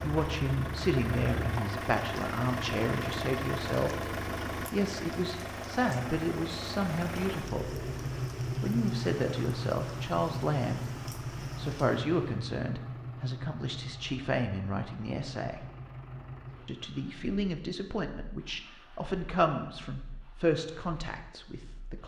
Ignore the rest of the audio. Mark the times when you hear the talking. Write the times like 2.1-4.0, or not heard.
0.0-4.0, 4.7-7.8, 8.6-15.7, 16.6-22.0.